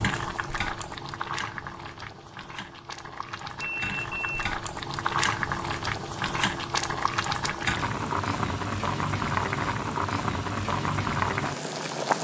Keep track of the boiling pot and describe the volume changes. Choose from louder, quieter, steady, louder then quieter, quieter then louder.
louder.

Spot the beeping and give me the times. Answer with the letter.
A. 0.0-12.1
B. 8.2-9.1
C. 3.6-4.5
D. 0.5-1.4
C.